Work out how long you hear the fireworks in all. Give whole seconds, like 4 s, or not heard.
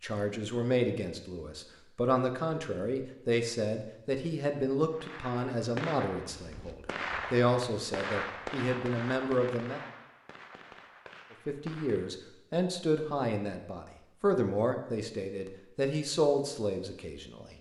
7 s.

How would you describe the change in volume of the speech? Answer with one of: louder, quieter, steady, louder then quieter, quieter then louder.
steady.